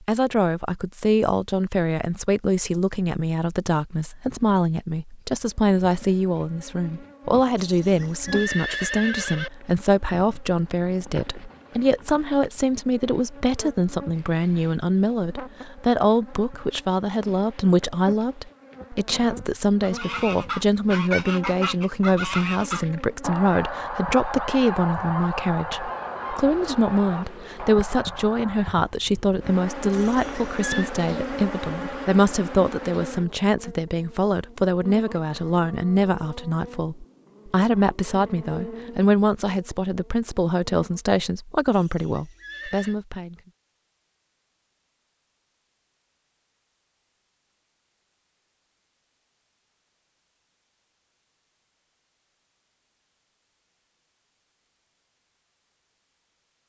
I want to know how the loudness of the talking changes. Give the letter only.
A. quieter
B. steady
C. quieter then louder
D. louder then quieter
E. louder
B.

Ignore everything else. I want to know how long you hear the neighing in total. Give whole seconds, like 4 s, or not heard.
4 s.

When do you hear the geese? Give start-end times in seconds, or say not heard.
19.8-28.8.